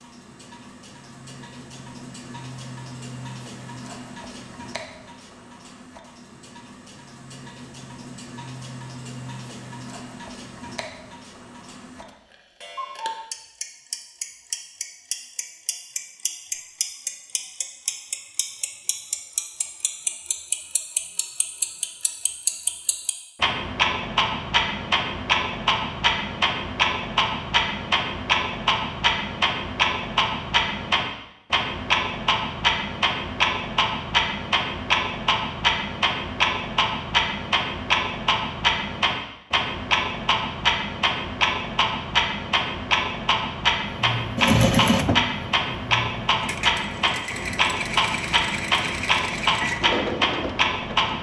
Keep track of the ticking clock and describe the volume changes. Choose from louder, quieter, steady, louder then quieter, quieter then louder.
louder.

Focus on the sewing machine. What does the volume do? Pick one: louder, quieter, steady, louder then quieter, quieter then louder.
quieter then louder.